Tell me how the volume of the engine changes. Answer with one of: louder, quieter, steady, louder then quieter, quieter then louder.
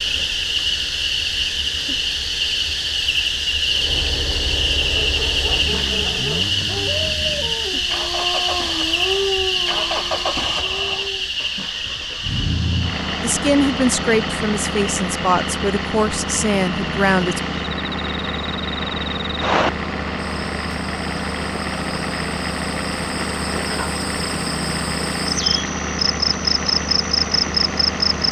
louder.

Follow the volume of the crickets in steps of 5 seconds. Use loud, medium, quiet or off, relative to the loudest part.
loud, loud, medium, medium, medium, loud.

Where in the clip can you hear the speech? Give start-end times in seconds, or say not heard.
13.2-17.4.